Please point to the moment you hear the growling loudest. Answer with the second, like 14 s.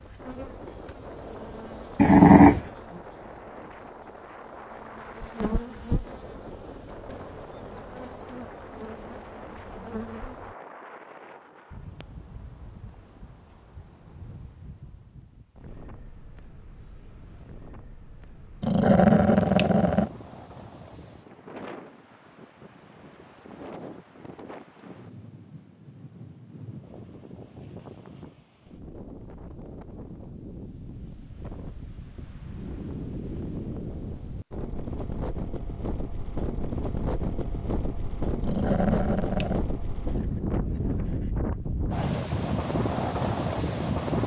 2 s.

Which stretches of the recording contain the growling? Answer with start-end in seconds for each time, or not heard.
1.9-2.6, 18.6-20.1, 38.4-39.6.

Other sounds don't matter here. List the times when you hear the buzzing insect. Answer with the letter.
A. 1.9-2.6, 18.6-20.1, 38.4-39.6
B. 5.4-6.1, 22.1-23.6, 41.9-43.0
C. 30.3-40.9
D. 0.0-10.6
D.